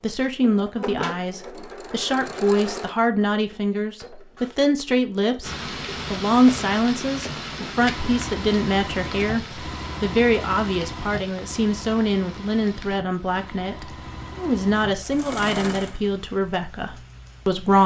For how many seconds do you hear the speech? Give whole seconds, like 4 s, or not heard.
18 s.